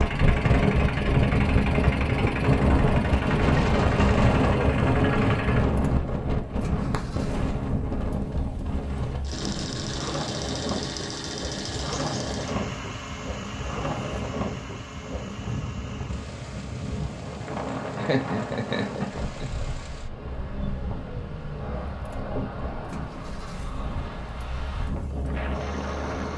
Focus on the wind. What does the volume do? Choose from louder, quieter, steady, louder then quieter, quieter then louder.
quieter.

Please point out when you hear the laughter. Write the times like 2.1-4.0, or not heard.
17.9-19.5.